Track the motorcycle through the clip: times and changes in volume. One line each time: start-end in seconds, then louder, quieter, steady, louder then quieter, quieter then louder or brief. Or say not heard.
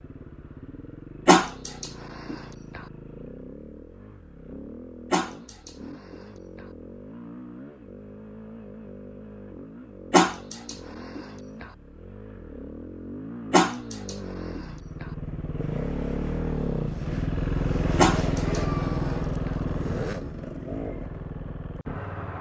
0.0-22.3 louder.